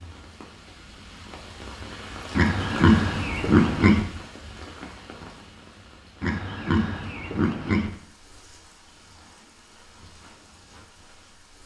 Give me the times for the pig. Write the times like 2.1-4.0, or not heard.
2.4-4.0, 6.2-7.9.